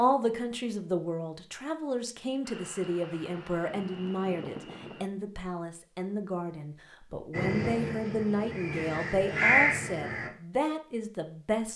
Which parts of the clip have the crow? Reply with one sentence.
The crow can be heard from 7.3 to 10.3 s.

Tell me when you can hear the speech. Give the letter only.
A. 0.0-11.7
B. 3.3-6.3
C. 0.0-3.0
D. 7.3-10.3
A.